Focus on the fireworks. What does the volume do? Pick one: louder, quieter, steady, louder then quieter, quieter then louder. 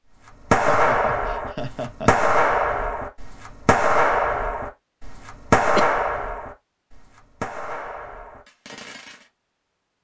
quieter.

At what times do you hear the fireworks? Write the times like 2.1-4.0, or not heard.
0.5-9.2.